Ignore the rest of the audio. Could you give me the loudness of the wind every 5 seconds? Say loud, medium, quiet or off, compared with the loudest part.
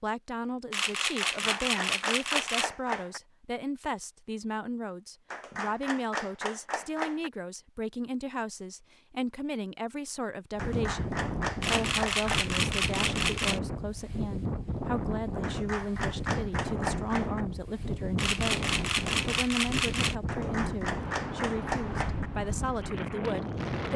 off, off, loud, loud, loud.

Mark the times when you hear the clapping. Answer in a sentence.
You can hear the clapping from 1.2 to 3.2 s, from 5.3 to 7.3 s, from 10.6 to 12.6 s, from 15.4 to 17.4 s and from 20.2 to 22.3 s.